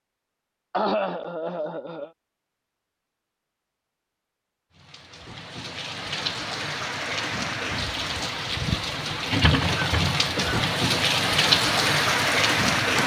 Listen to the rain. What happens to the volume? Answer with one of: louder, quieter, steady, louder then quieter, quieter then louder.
louder.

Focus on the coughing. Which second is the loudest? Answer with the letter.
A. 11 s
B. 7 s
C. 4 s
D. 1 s
D.